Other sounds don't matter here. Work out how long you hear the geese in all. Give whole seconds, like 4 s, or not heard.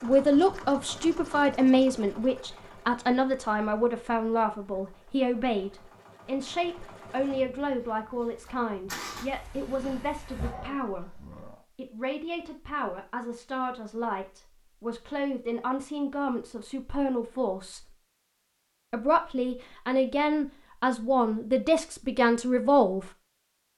not heard.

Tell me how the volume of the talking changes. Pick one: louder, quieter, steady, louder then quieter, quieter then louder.
quieter then louder.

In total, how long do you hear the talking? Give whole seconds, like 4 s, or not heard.
22 s.